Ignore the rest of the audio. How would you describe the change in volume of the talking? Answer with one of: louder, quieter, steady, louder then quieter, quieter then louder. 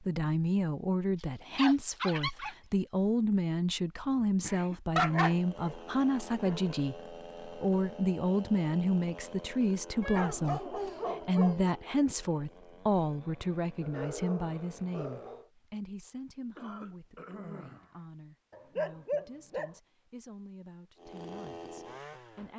quieter.